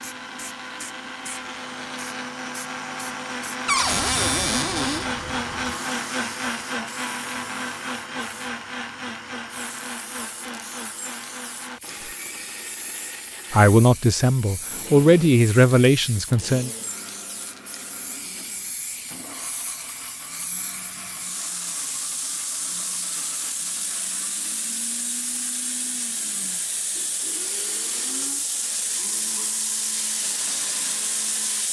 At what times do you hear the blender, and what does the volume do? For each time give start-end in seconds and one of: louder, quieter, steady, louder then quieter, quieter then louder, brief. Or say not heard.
0.0-31.6 quieter.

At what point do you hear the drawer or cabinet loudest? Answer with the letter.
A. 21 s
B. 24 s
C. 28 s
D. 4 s
D.